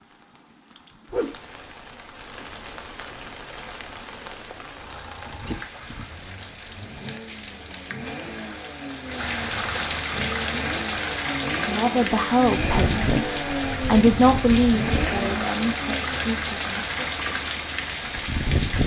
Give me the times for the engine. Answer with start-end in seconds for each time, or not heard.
4.7-16.4.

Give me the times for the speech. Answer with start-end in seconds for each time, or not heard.
11.7-16.9.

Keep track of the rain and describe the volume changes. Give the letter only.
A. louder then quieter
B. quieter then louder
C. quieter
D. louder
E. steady
D.